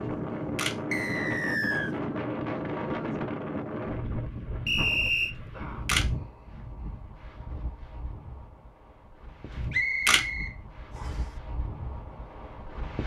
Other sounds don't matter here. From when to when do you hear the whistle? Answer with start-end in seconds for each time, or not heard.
0.9-1.9, 4.7-5.3, 9.7-11.2.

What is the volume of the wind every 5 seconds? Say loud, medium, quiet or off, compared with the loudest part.
loud, medium, medium.